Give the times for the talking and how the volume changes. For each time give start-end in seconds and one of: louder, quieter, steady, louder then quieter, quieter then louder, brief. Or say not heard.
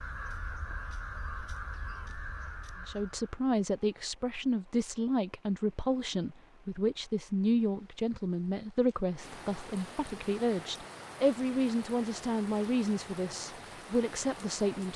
2.9-14.9 steady.